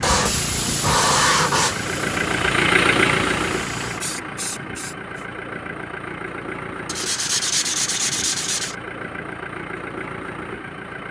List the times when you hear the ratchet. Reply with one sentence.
You can't hear the ratchet here.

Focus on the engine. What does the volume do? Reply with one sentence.
The volume of the engine goes down.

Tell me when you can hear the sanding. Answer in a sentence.
You can hear the sanding from 0.0 to 1.8 s and from 6.8 to 8.8 s.